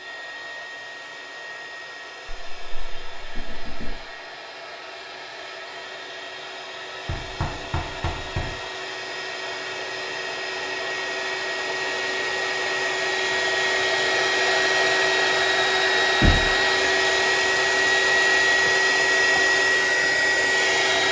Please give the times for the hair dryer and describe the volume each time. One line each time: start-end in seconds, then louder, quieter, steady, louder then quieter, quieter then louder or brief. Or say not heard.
0.0-21.0 louder.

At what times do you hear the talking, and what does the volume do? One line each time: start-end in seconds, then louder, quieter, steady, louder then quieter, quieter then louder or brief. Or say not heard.
not heard.